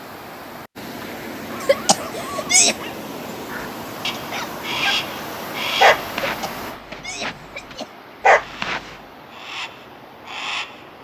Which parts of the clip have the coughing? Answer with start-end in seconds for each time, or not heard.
1.6-2.8, 6.2-7.9.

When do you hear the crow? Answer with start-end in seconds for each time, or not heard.
3.5-6.1, 8.3-10.8.